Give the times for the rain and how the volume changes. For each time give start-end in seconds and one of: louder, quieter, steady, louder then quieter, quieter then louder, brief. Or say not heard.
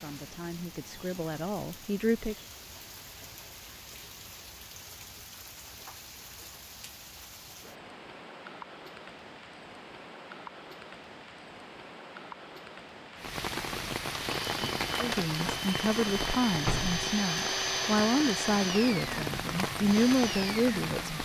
0.0-21.2 louder.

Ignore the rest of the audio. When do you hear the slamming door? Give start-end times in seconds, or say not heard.
16.6-17.1.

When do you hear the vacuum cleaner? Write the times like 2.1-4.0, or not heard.
14.2-21.2.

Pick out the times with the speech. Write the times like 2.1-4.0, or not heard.
0.0-2.4, 14.9-21.2.